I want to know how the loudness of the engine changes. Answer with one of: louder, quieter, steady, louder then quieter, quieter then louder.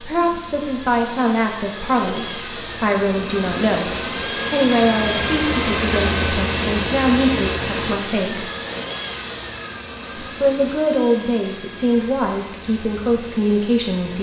louder then quieter.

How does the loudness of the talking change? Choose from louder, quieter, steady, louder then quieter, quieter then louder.
steady.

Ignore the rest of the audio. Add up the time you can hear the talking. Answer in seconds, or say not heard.
12 s.